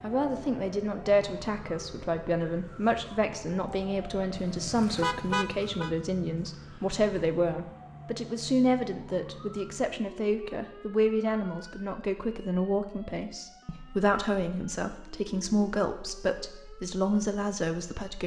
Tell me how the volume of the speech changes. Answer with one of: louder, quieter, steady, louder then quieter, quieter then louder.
steady.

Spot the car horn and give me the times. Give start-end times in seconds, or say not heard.
4.3-5.9.